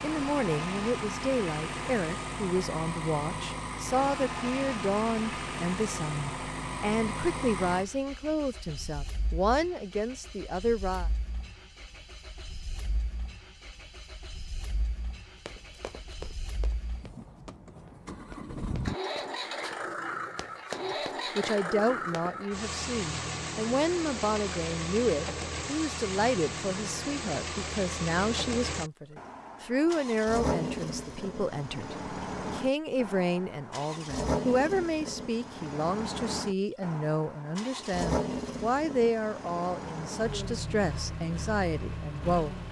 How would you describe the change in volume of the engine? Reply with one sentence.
The loudness of the engine goes down, then up.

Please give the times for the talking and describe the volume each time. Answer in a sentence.
The talking can be heard from 0.0 to 11.1 s, at a steady volume; and from 21.4 to 42.6 s, at a steady volume.